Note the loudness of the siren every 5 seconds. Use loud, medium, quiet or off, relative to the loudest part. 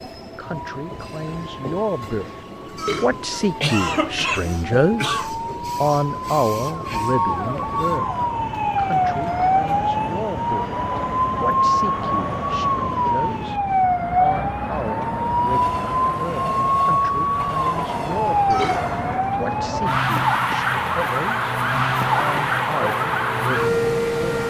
quiet, loud, loud, loud, loud.